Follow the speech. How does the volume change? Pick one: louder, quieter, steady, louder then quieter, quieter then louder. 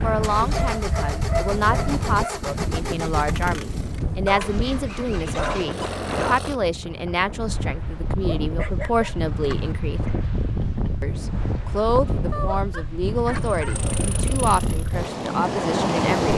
steady.